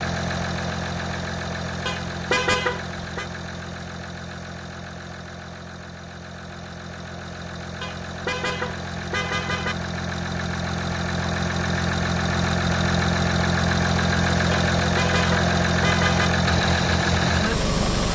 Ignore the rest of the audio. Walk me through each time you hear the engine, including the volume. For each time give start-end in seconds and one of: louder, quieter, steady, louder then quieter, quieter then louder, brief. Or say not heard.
0.0-18.0 quieter then louder.